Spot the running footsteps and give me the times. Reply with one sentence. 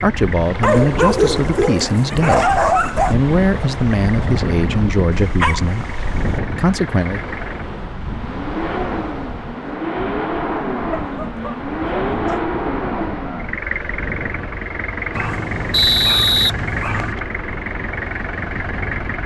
The running footsteps can't be heard in this clip.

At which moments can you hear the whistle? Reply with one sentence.
You can hear the whistle from 15.7 to 17.2 s.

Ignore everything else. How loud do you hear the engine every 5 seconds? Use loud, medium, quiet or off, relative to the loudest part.
medium, medium, loud, loud.